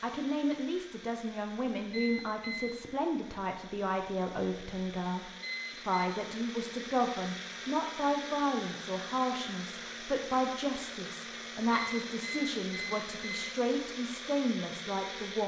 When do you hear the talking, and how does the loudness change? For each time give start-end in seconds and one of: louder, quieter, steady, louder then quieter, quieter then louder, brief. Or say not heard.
0.0-15.4 steady.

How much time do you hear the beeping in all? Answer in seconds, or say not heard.
3 s.